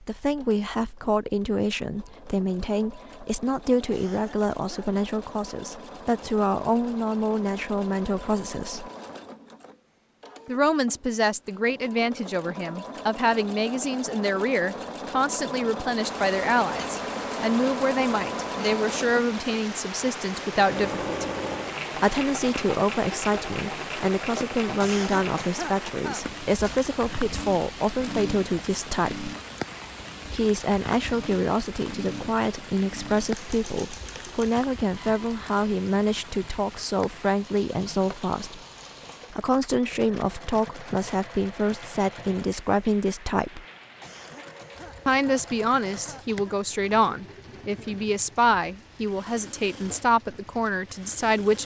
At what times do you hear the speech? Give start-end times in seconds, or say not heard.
0.0-8.9, 10.4-21.3, 21.9-29.3, 30.3-38.6, 39.3-43.6, 45.0-51.5.